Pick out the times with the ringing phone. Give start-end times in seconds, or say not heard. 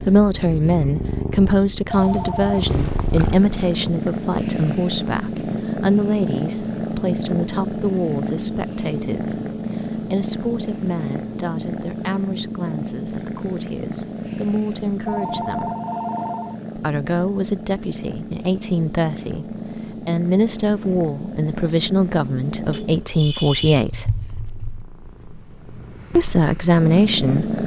1.9-3.9, 15.1-16.6, 22.7-23.9.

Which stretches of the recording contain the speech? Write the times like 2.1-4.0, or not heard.
0.1-15.7, 16.8-24.2, 26.1-27.6.